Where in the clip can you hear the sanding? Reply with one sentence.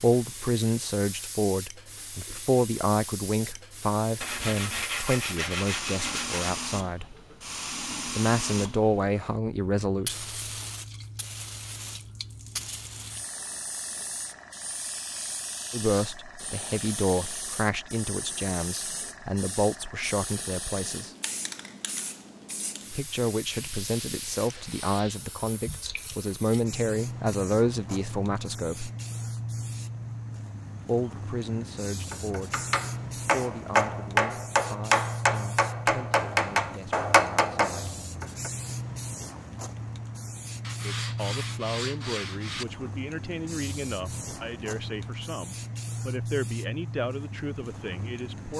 The sanding can be heard from 4.2 to 6.5 s, from 23.5 to 25.2 s and from 40.6 to 42.6 s.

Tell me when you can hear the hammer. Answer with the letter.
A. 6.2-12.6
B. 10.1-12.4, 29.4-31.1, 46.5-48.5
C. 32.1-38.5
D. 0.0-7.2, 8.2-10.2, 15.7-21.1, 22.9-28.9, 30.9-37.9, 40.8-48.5
C.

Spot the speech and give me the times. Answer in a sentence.
You can hear the speech from 0.0 to 7.2 s, from 8.2 to 10.2 s, from 15.7 to 21.1 s, from 22.9 to 28.9 s, from 30.9 to 37.9 s and from 40.8 to 48.5 s.